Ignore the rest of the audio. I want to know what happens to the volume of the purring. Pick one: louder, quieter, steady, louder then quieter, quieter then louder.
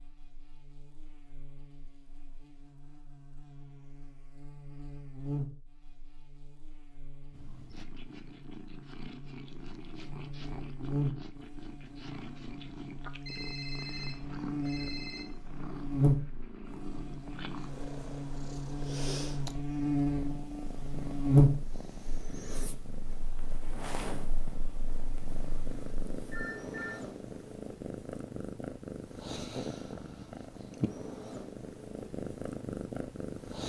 louder.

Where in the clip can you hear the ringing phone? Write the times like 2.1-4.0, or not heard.
13.2-15.2, 26.3-27.0.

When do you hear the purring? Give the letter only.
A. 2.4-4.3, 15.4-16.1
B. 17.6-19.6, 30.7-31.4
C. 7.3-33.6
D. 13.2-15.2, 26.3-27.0
C.